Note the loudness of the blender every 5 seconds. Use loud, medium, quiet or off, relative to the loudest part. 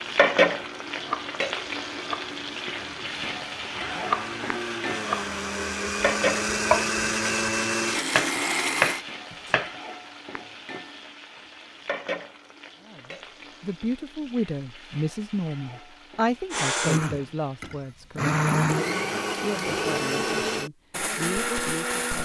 quiet, loud, off, loud, loud.